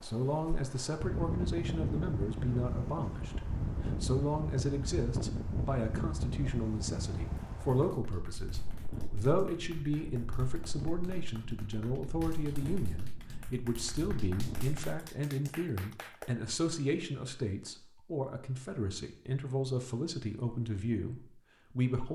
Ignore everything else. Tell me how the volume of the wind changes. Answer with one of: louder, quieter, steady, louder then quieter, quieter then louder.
quieter.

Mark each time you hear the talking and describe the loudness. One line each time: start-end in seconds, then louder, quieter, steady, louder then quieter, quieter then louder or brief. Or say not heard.
0.0-22.0 steady.